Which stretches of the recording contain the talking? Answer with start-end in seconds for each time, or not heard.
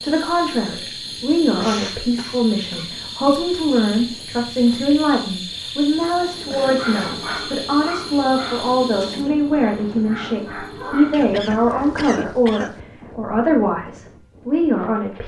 0.0-15.2.